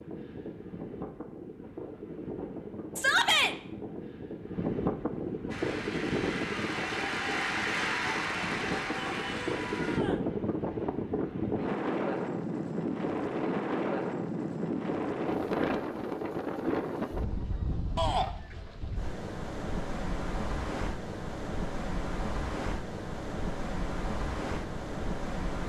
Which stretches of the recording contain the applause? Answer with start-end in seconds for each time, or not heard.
5.5-10.0.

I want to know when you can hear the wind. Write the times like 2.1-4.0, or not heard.
0.0-25.6.